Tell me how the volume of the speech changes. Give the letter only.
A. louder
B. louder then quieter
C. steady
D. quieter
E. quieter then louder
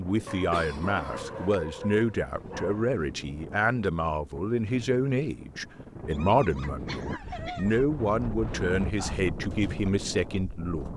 C.